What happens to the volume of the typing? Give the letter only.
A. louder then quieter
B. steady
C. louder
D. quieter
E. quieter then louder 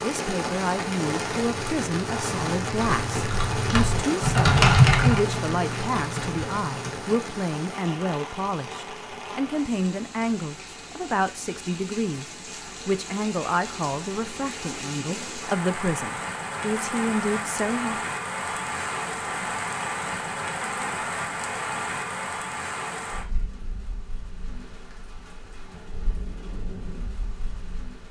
A.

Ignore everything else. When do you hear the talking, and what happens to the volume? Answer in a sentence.
The talking can be heard from 0.0 to 18.1 s, at a steady volume.